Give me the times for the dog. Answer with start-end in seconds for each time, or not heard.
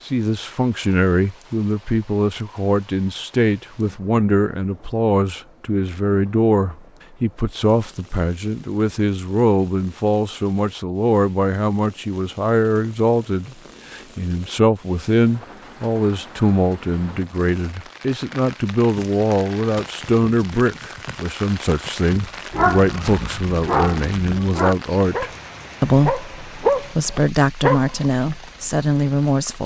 22.4-28.1.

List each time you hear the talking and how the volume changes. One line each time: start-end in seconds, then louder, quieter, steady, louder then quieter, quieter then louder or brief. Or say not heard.
0.1-29.6 steady.